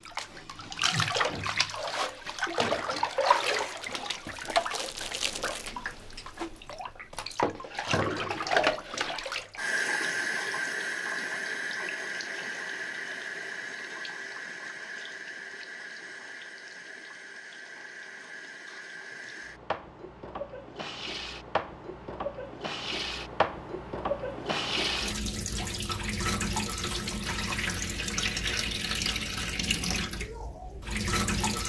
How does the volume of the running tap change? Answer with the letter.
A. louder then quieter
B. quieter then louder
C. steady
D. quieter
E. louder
B.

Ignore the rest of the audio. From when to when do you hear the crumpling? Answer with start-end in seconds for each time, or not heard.
3.3-5.8.